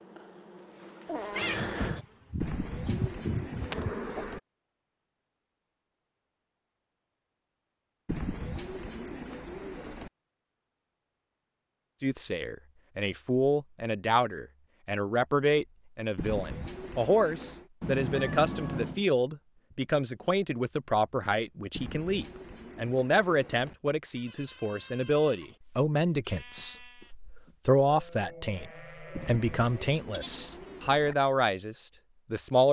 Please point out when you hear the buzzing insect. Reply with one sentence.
The buzzing insect can be heard from 0.0 to 4.4 s.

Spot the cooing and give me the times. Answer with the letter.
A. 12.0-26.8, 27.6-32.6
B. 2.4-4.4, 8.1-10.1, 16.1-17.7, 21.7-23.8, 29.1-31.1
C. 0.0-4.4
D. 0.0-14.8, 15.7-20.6
B.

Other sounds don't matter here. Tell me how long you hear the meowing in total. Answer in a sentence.
You can hear the meowing for 2 seconds altogether.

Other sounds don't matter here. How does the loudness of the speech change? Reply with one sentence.
The volume of the speech stays about the same.